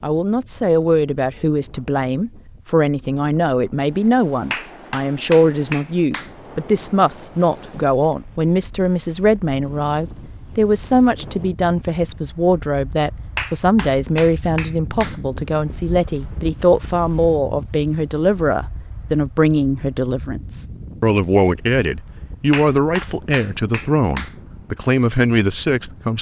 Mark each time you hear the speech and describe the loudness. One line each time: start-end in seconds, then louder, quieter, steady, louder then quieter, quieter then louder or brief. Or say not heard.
0.0-26.1 steady.